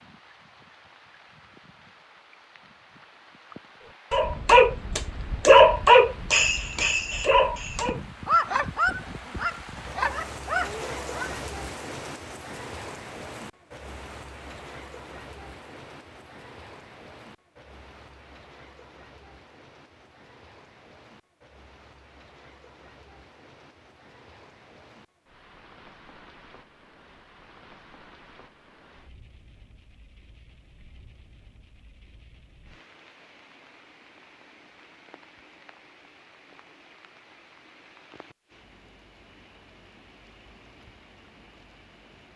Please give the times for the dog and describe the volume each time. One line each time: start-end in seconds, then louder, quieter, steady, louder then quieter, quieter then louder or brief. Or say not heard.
4.1-11.3 quieter.